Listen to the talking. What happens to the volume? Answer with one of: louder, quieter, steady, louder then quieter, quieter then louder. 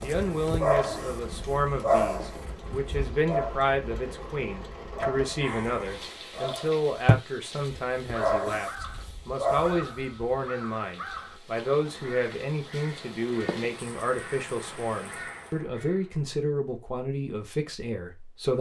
steady.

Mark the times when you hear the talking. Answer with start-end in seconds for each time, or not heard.
0.0-18.5.